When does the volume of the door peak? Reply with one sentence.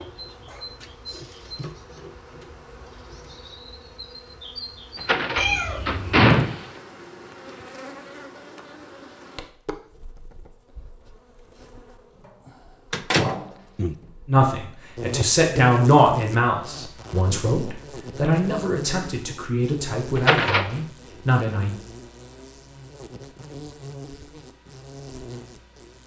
The volume of the door peaks at 6 seconds.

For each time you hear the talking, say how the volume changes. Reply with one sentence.
The talking can be heard from 14.2 to 21.8 s, getting quieter.